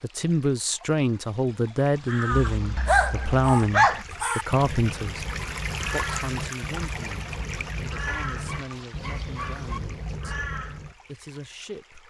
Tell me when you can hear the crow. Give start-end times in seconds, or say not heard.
2.0-10.9.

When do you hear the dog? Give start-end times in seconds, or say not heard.
2.4-4.0, 8.1-9.8.